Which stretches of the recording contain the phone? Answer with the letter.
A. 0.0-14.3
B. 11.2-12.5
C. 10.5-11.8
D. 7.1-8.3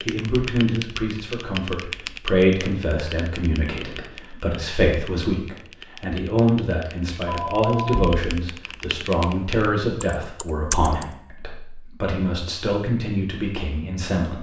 D.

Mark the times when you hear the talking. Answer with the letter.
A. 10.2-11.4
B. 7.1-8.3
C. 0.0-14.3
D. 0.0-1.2
C.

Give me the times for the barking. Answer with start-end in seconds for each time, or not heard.
not heard.